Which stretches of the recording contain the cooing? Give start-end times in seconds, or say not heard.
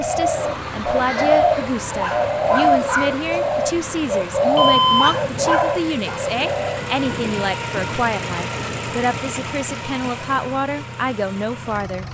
0.0-6.8.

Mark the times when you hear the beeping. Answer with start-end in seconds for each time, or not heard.
4.5-5.6.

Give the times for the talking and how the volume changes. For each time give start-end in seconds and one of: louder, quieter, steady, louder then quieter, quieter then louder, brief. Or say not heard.
0.0-12.0 steady.